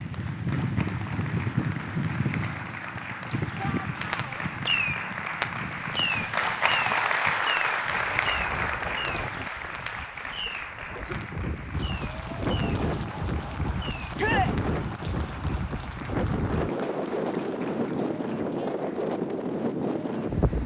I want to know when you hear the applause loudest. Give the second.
7 s.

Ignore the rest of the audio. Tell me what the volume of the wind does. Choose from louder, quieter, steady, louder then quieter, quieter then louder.
quieter then louder.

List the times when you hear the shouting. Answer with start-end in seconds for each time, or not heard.
3.5-4.5, 14.2-14.6.